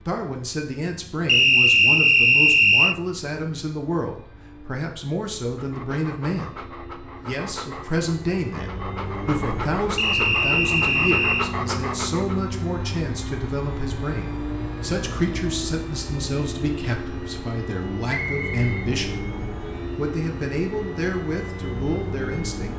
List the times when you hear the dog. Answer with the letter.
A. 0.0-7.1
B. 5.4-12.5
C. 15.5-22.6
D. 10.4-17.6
B.